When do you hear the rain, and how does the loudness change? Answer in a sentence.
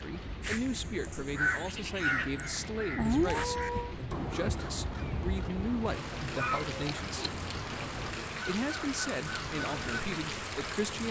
You can hear the rain from 0.0 to 11.0 s, getting louder.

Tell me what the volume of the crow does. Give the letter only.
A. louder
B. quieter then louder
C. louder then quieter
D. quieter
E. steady
D.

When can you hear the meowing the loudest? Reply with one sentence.
The loudest moment of the meowing is at 3 seconds.